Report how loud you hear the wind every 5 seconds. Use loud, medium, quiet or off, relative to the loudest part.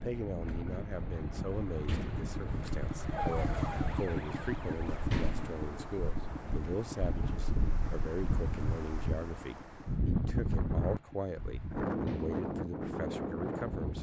medium, medium, loud.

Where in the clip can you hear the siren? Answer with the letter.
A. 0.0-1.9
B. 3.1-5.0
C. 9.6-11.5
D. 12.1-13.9
B.